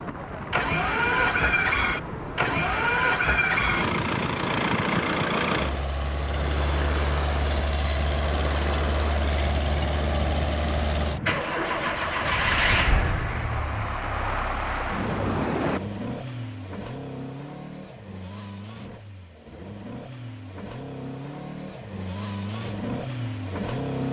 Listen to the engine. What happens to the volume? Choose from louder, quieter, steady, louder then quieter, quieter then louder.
quieter.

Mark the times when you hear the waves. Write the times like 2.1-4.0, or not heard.
0.0-15.8.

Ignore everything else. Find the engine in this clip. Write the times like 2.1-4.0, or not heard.
0.0-24.0.